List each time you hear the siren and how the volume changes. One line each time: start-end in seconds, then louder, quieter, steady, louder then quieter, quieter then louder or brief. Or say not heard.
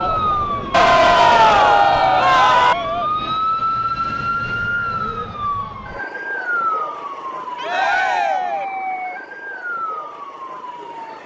0.0-11.2 quieter.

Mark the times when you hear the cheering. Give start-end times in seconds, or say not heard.
0.7-2.8, 7.5-8.7.